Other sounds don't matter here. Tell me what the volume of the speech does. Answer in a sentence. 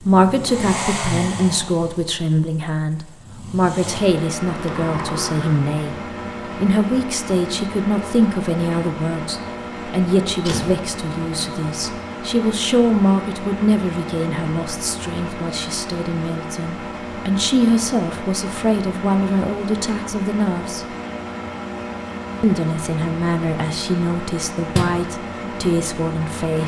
The loudness of the speech stays about the same.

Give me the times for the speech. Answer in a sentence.
The speech can be heard from 0.0 to 6.0 s, from 6.5 to 20.9 s and from 22.4 to 26.6 s.